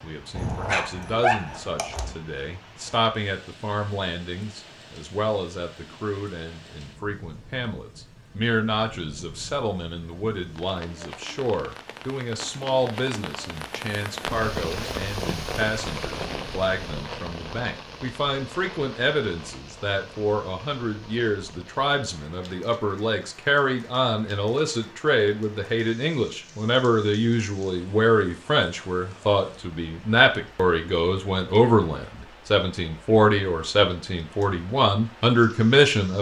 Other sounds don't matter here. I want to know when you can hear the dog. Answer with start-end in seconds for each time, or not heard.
0.3-2.1.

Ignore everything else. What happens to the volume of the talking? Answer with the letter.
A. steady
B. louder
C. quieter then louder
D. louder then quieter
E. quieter
B.